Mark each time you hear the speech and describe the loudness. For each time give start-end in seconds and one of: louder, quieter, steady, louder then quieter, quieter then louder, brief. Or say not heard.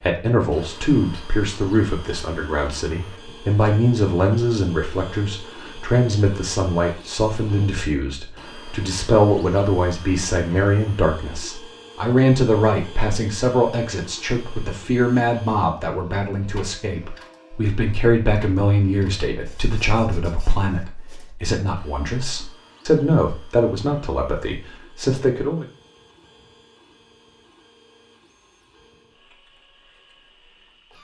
0.0-25.6 steady.